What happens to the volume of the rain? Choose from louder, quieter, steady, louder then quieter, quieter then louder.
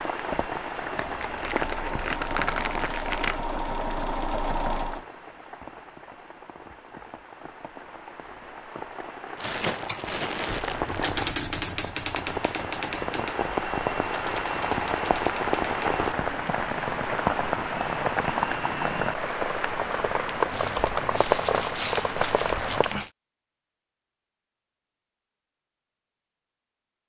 quieter then louder.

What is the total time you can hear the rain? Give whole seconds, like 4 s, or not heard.
23 s.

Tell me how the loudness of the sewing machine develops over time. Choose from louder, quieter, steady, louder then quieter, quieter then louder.
louder.